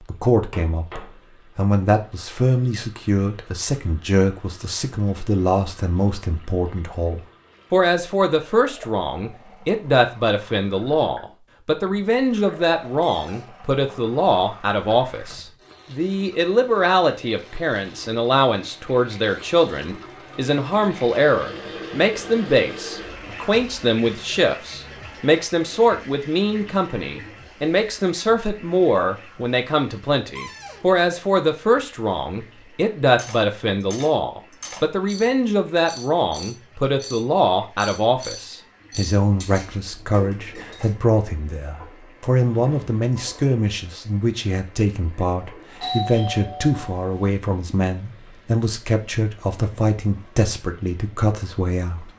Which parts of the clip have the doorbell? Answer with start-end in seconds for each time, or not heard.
45.8-47.3.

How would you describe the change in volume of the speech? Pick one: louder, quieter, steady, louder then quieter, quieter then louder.
steady.